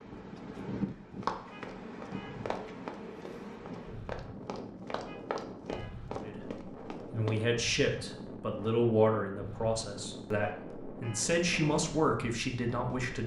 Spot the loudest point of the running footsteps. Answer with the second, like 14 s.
1 s.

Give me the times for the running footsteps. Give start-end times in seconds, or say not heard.
0.8-7.4.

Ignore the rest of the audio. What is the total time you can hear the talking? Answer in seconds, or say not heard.
7 s.